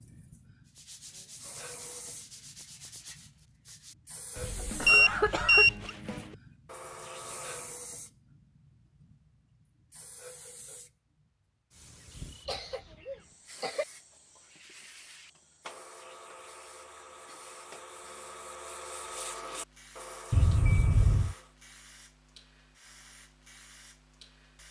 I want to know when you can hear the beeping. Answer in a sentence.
The beeping can be heard from 4.8 to 5.9 s.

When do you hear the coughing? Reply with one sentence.
The coughing can be heard from 4.8 to 5.9 s, from 12.3 to 13.8 s and from 20.3 to 21.4 s.